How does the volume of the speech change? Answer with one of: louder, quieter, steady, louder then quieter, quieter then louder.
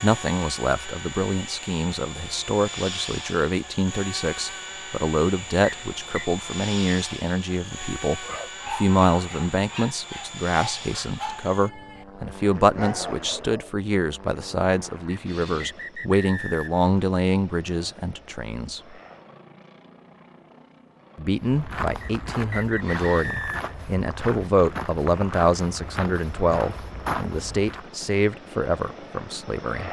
steady.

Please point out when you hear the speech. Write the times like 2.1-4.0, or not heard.
0.0-18.9, 21.1-29.8.